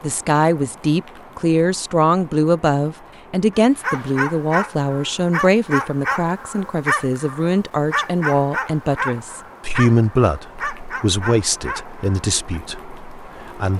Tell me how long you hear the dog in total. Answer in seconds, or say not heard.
9 s.